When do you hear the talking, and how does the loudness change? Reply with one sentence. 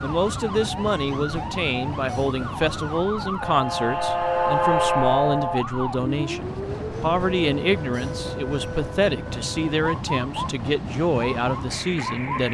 The talking can be heard from 0.0 to 12.4 s, at a steady volume.